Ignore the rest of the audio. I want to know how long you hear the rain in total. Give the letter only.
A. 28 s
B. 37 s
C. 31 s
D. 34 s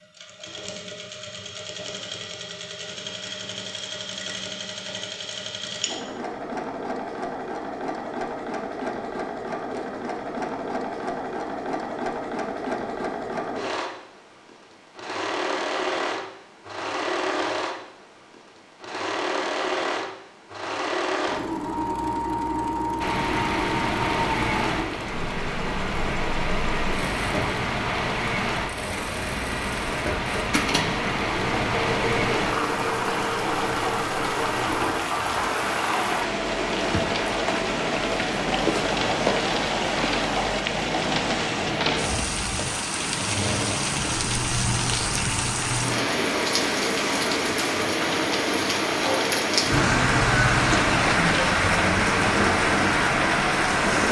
C.